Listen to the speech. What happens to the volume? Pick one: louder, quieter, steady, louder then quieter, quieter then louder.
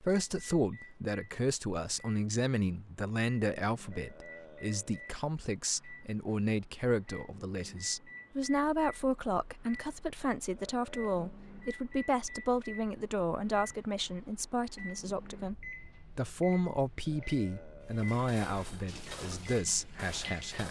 steady.